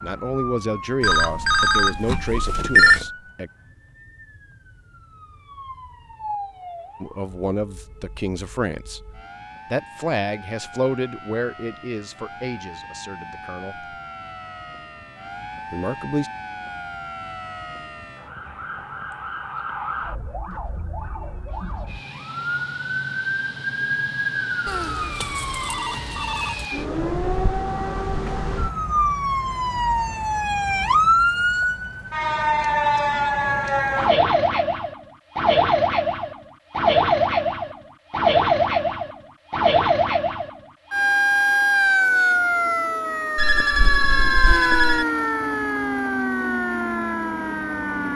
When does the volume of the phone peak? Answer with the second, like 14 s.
3 s.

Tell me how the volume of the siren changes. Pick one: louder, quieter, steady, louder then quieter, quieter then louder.
louder.